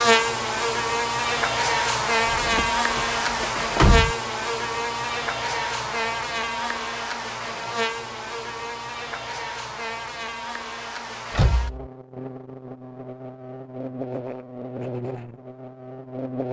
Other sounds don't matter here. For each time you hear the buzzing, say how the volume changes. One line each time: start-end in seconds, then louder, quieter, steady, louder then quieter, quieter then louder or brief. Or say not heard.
0.0-16.4 quieter.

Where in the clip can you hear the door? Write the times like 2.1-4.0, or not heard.
2.2-4.2, 11.3-11.9.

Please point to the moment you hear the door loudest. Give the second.
4 s.